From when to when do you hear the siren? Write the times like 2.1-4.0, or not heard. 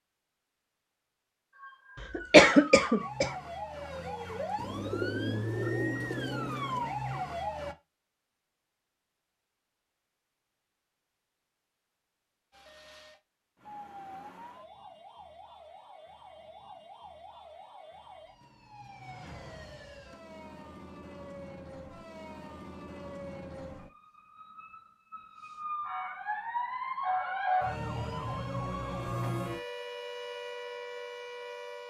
1.6-7.8, 12.5-31.8.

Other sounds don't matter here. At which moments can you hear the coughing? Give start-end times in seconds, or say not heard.
2.0-3.3.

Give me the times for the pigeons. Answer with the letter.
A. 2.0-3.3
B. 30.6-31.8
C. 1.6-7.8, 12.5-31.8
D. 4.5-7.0
D.